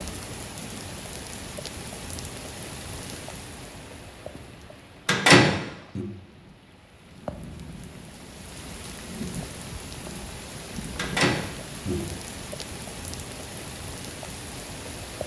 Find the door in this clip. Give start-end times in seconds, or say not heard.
5.0-6.0, 10.9-12.0.